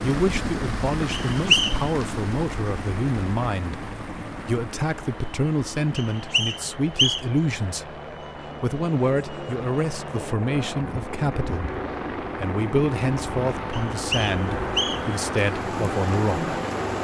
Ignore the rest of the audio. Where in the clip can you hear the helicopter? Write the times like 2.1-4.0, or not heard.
0.0-16.9.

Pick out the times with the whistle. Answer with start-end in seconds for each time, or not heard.
1.1-1.8, 6.0-7.2, 13.7-15.2.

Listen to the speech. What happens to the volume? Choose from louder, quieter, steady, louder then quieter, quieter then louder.
steady.